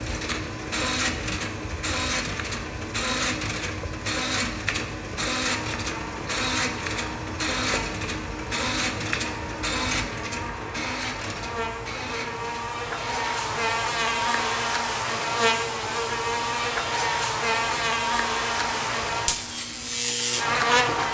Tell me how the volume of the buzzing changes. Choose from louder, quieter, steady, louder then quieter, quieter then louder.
louder.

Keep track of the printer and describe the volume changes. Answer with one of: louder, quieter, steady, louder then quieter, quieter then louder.
quieter.